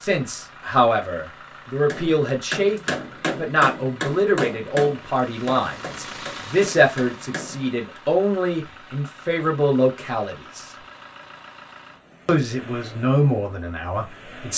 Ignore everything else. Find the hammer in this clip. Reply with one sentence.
You can hear the hammer from 1.9 to 8.0 s.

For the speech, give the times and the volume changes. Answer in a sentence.
The speech can be heard from 0.0 to 10.7 s, at a steady volume; and briefly from 12.2 to 14.5 s.